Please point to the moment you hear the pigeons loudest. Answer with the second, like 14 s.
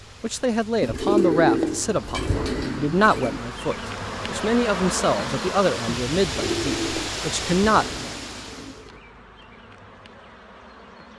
1 s.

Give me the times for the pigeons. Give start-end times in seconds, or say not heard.
0.8-3.4, 6.2-9.0.